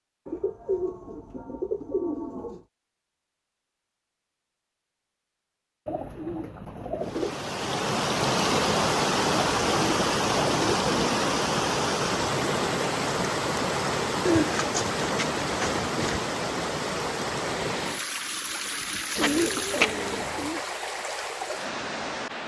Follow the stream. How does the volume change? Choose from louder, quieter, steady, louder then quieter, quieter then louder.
quieter.